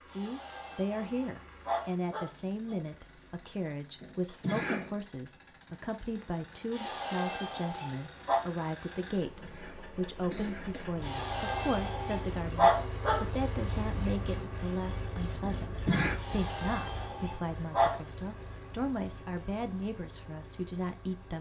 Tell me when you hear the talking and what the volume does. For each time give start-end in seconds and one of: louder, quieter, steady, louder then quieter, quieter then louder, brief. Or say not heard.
0.0-21.3 steady.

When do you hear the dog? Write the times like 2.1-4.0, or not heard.
0.1-2.8, 6.7-8.4, 11.0-13.2, 16.1-18.0.